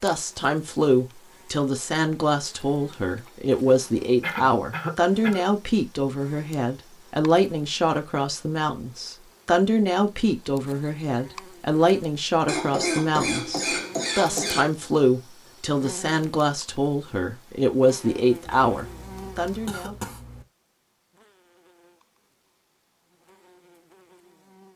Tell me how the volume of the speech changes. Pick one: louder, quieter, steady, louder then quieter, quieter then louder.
steady.